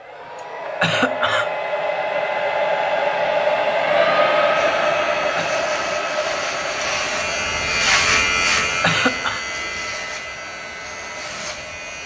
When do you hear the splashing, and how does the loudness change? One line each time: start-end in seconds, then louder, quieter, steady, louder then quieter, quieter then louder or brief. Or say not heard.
not heard.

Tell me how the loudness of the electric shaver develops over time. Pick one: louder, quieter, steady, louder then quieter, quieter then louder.
louder then quieter.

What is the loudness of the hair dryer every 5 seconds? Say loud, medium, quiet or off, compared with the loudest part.
loud, medium, quiet.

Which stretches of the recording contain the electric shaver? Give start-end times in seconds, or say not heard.
4.5-12.0.